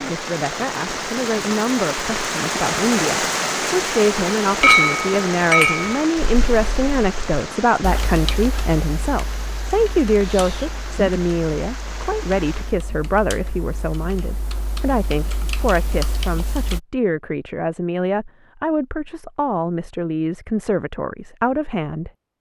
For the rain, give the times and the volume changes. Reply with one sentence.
You can hear the rain from 0.0 to 12.8 s, getting quieter.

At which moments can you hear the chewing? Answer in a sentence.
You can't hear the chewing here.